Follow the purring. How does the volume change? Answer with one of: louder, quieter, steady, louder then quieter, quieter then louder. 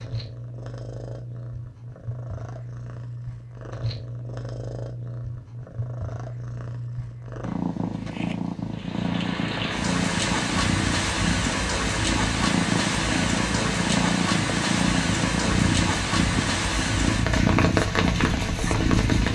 louder.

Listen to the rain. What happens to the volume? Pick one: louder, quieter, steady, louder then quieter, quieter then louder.
steady.